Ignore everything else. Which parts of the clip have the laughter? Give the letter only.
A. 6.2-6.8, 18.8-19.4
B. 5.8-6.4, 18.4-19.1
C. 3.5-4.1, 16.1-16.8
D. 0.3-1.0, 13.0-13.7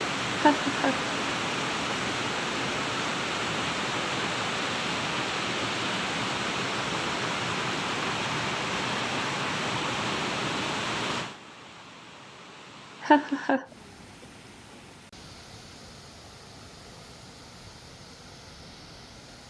D.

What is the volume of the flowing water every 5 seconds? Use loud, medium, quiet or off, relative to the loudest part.
loud, loud, medium, quiet.